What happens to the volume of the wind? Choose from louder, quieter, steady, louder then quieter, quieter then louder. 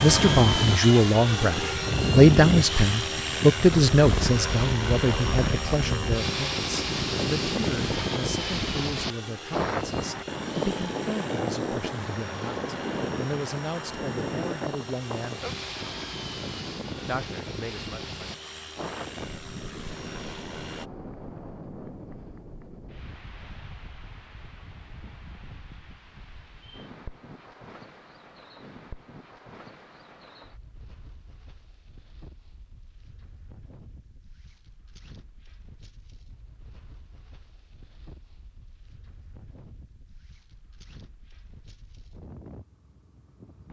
quieter.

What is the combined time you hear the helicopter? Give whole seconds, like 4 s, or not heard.
21 s.